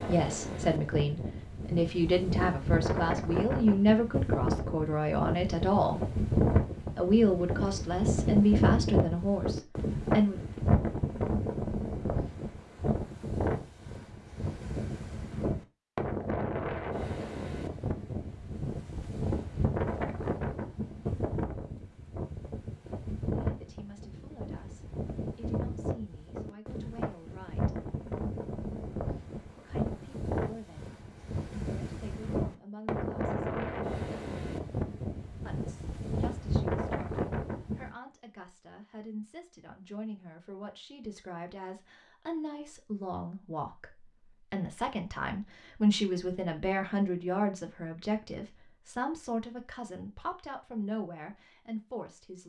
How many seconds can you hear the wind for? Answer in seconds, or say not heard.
38 s.